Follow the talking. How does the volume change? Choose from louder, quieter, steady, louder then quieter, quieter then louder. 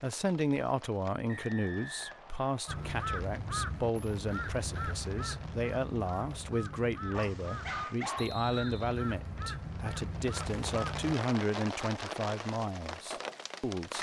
steady.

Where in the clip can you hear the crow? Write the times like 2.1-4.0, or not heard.
2.6-11.2.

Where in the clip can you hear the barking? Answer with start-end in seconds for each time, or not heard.
7.1-8.4.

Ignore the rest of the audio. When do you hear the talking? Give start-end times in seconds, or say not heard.
0.0-13.9.